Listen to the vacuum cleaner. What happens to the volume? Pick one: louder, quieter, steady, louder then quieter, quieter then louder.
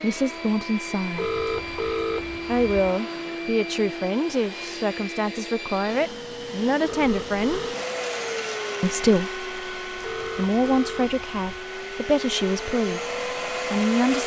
steady.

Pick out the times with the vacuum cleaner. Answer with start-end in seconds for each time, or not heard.
0.0-14.2.